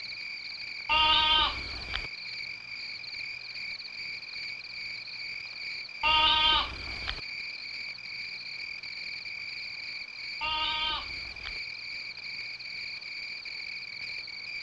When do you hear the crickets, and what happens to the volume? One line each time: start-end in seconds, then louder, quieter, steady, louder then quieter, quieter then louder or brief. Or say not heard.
0.0-14.5 steady.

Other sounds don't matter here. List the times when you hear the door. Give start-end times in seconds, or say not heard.
not heard.